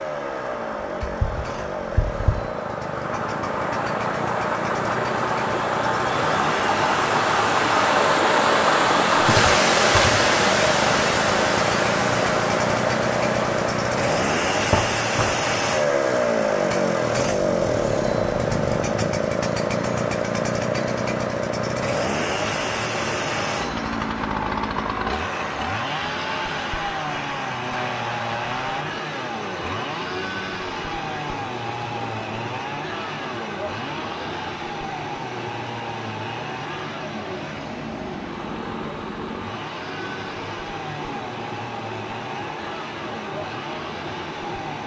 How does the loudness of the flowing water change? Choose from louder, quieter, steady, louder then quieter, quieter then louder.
quieter.